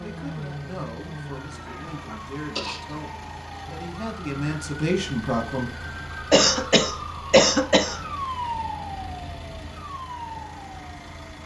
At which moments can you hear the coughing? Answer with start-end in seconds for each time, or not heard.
1.6-2.8, 6.3-8.0.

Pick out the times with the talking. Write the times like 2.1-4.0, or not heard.
0.0-5.7.